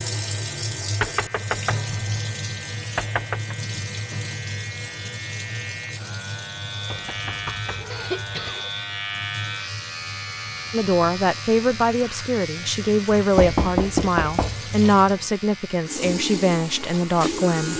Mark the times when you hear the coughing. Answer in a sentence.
You can hear the coughing from 7.9 to 8.8 s.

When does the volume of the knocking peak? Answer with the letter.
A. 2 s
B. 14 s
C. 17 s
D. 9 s
B.